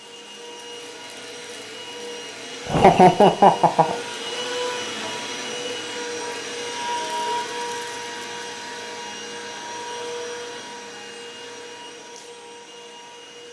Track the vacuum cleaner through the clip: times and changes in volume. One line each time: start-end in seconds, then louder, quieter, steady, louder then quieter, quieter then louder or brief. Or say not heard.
0.0-13.4 louder then quieter.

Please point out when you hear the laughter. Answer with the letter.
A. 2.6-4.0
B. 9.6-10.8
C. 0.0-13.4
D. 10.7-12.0
A.